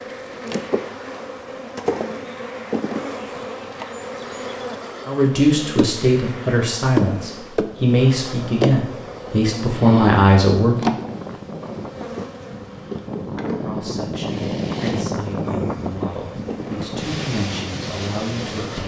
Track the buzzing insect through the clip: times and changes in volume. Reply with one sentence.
You can hear the buzzing insect from 0.0 to 18.8 s, getting quieter.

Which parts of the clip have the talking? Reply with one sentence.
The talking can be heard from 5.0 to 10.9 s and from 13.7 to 18.8 s.